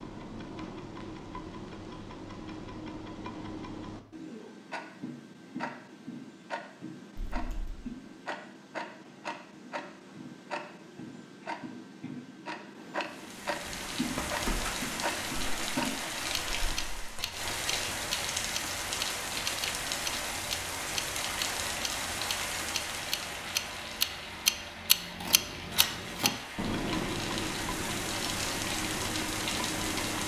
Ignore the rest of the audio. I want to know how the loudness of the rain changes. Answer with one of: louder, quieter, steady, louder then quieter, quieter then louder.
quieter then louder.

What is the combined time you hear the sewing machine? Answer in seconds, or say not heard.
not heard.